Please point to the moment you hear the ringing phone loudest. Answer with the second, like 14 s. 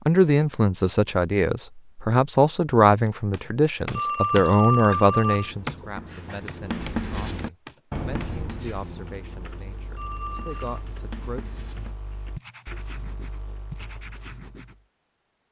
5 s.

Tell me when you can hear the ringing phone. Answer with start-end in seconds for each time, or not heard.
3.9-5.5, 9.9-10.8.